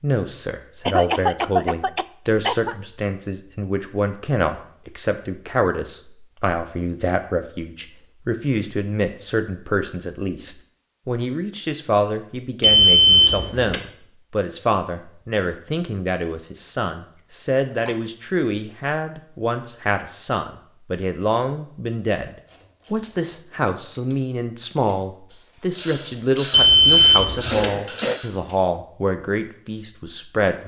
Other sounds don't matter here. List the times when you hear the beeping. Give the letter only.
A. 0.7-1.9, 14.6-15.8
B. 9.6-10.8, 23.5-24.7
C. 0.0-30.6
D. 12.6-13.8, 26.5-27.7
D.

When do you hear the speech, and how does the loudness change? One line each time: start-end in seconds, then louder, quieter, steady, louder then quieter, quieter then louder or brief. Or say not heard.
0.0-30.6 steady.